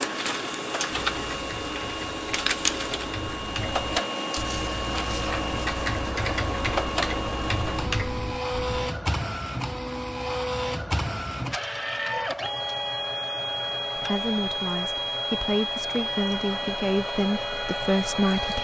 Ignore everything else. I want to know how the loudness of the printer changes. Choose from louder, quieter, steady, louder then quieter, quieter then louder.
steady.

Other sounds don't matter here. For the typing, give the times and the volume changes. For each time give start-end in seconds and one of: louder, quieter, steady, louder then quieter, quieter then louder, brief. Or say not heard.
0.9-8.9 louder.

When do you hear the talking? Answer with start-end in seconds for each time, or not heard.
13.9-18.5.